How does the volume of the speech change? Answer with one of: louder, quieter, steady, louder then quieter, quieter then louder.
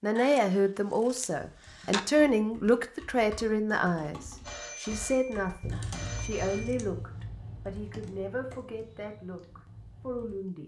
quieter.